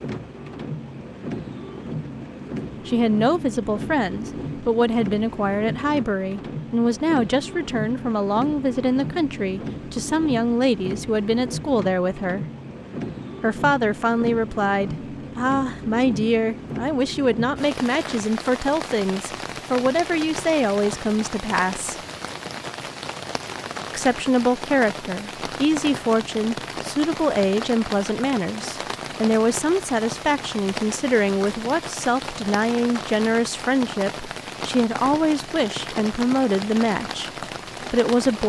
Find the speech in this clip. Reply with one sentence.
The speech can be heard from 2.9 to 12.4 s, from 13.4 to 21.9 s, from 23.9 to 37.3 s and from 37.9 to 38.4 s.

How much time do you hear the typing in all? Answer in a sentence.
The typing can't be heard in this clip.